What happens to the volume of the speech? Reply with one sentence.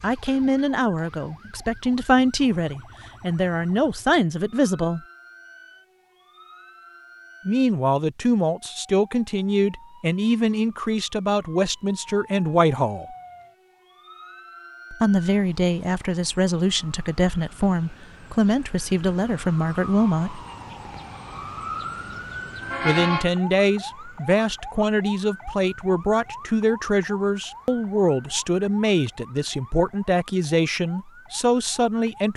The volume of the speech stays about the same.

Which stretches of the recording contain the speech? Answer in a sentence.
You can hear the speech from 0.0 to 5.0 s, from 7.5 to 13.1 s, from 14.9 to 20.4 s and from 22.9 to 32.3 s.